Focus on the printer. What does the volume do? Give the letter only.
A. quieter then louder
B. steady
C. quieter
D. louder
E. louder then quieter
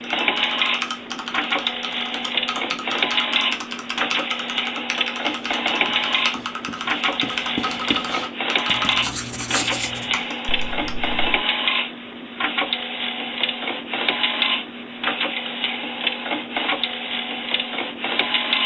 B.